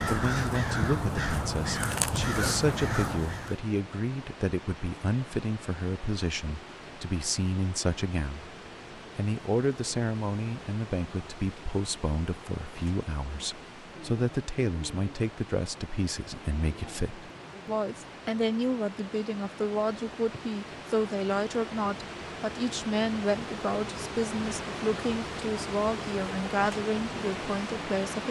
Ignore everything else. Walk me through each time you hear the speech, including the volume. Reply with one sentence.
You can hear the speech from 0.1 to 8.5 s, at a steady volume; and from 9.2 to 28.2 s, at a steady volume.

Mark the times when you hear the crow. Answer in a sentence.
The crow can be heard from 0.0 to 3.5 s.